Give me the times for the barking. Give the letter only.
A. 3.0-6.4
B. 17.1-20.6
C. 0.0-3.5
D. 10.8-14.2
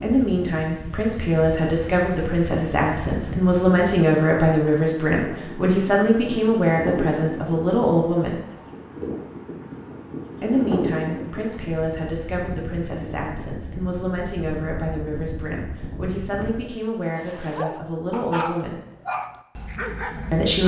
B.